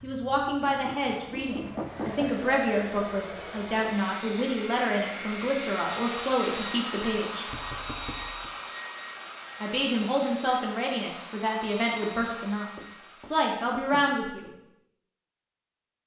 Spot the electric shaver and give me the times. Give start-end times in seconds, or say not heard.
not heard.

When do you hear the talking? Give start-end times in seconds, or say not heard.
0.0-7.5, 9.6-14.5.